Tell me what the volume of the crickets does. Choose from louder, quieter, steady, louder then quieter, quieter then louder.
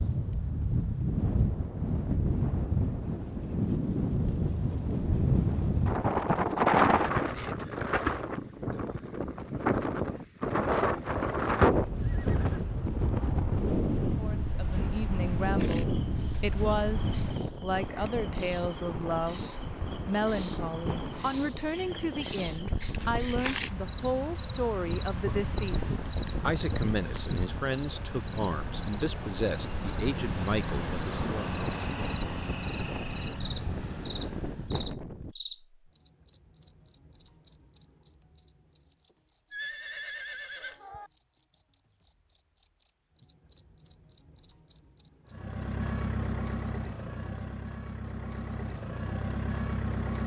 louder then quieter.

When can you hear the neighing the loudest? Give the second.
40 s.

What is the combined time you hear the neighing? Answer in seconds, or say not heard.
2 s.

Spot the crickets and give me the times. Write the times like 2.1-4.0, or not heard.
15.6-50.1.